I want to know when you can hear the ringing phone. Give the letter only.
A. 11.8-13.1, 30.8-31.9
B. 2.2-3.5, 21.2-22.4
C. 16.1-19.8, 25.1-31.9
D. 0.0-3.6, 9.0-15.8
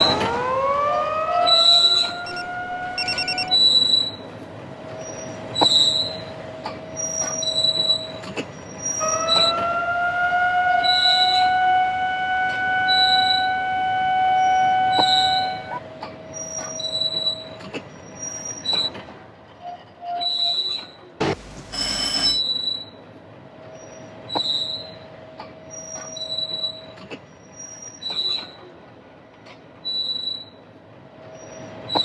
B.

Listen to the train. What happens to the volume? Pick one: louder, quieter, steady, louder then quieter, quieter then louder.
quieter.